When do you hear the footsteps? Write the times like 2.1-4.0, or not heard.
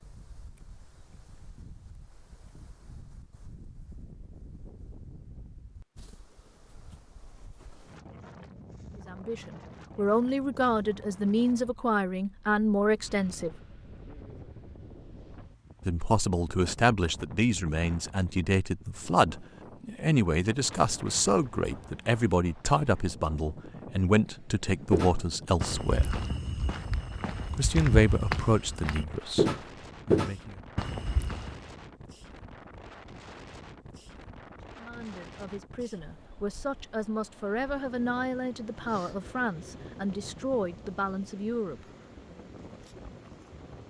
24.9-31.6.